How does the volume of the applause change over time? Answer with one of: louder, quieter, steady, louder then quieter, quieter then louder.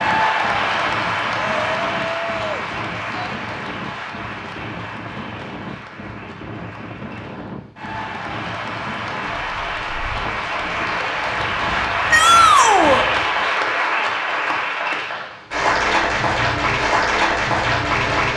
quieter then louder.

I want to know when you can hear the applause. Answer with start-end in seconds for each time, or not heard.
0.0-18.3.